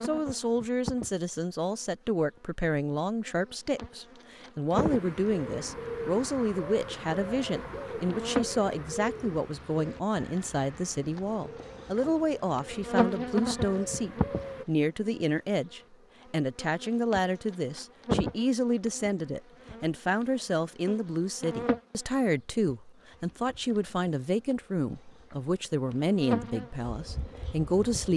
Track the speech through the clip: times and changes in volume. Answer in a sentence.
The speech can be heard from 0.0 to 28.1 s, at a steady volume.